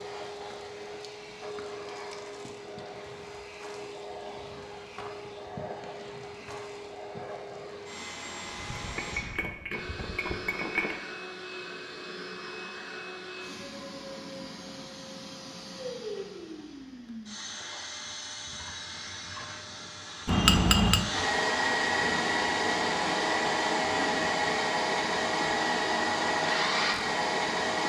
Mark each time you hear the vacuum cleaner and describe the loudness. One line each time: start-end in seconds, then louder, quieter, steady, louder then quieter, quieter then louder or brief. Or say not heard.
0.0-27.8 louder.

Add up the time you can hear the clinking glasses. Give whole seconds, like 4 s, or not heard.
3 s.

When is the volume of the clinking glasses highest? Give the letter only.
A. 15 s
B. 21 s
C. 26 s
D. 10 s
B.